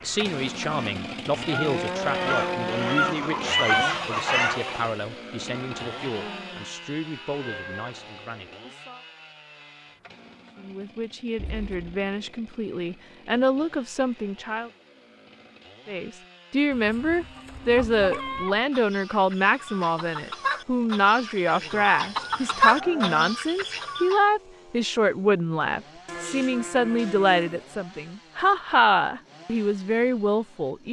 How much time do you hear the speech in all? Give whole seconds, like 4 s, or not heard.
28 s.